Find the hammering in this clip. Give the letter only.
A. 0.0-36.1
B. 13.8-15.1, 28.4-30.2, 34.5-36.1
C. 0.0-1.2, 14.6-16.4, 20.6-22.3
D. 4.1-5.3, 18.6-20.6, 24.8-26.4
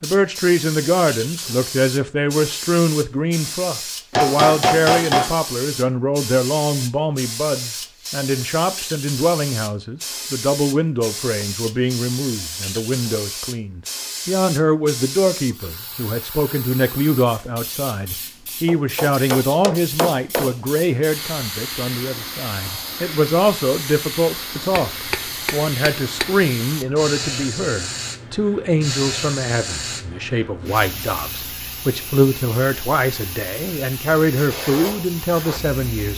D.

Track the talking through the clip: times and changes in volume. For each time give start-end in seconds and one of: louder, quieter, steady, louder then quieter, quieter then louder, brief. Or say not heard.
0.0-36.1 steady.